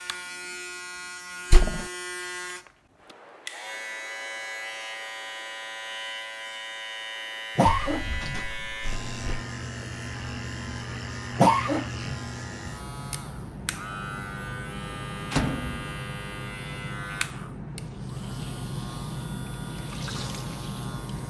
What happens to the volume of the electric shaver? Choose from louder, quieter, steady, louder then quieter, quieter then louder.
steady.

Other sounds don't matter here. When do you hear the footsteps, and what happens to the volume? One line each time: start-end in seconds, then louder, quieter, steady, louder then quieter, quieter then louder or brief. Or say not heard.
not heard.